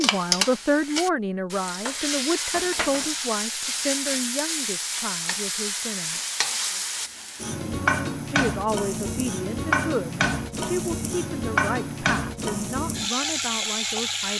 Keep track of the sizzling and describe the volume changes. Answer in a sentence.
The volume of the sizzling stays about the same.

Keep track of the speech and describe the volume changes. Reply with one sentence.
The volume of the speech goes down.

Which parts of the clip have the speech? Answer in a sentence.
You can hear the speech from 0.0 to 6.2 s and from 8.2 to 14.3 s.